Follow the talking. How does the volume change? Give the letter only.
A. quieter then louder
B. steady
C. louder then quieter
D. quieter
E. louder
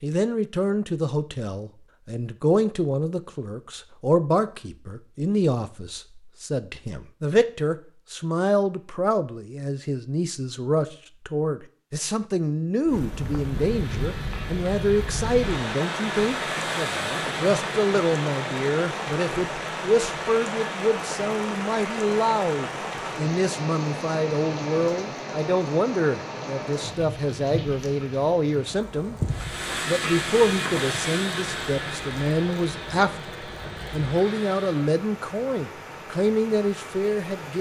B.